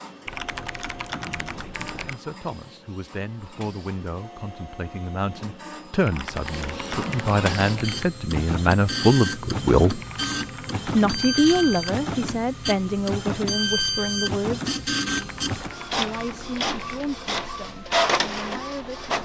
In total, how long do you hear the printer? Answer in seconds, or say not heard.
19 s.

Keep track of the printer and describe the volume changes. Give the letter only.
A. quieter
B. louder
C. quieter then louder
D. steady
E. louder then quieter
B.